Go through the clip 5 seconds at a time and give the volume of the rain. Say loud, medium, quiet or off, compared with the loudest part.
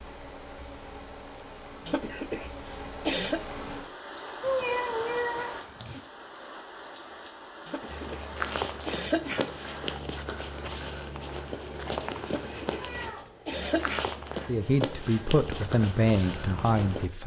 loud, loud, off, off.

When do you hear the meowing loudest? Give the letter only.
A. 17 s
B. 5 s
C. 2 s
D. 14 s
B.